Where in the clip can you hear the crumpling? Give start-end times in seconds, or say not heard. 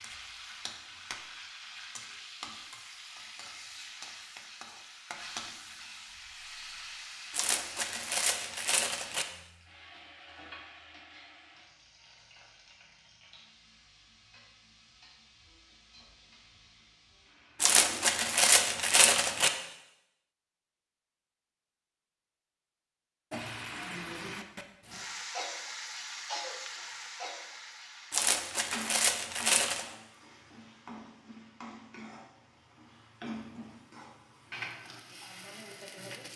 7.3-9.2, 17.6-19.5, 28.1-29.9.